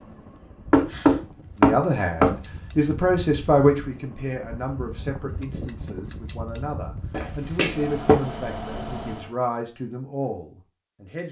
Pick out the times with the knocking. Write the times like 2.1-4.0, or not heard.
0.7-2.4, 7.1-8.2.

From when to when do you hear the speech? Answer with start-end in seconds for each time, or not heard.
1.6-11.2.